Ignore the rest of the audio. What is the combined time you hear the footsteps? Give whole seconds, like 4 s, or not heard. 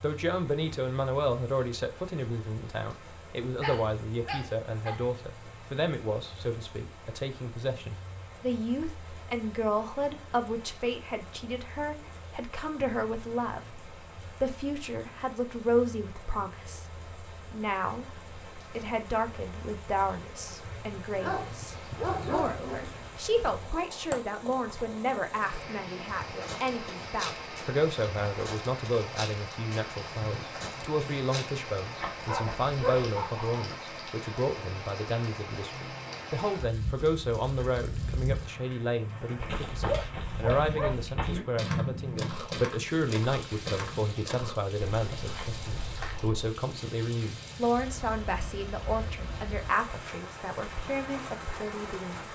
14 s.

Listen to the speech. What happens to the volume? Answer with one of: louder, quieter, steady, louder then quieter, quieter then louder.
steady.